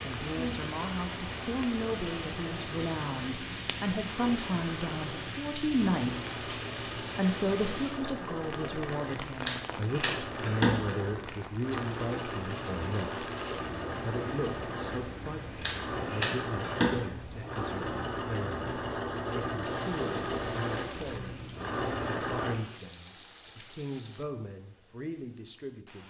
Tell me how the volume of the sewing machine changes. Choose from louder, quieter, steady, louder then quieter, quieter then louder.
louder.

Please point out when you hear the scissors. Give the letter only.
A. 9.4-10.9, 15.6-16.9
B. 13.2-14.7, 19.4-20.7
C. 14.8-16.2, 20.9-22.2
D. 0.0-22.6
A.